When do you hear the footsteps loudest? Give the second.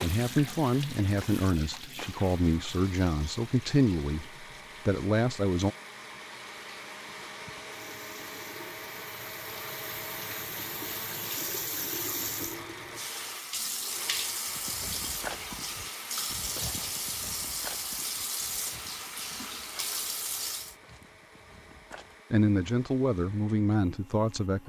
15 s.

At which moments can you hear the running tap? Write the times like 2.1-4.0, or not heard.
0.0-20.8.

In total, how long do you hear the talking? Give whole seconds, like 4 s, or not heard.
8 s.